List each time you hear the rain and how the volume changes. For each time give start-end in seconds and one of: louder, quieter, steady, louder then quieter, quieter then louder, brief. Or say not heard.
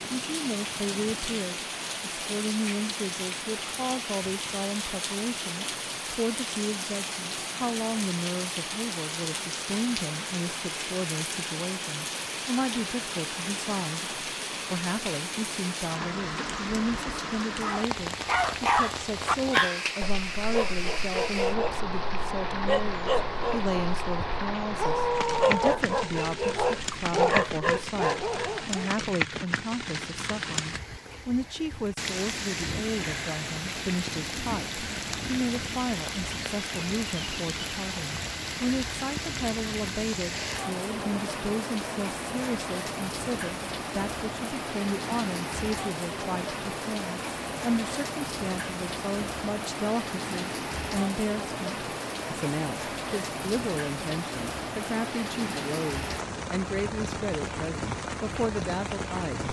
0.0-59.4 steady.